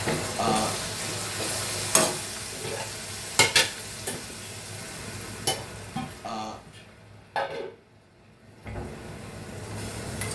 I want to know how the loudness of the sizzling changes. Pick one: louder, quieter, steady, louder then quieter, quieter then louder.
quieter.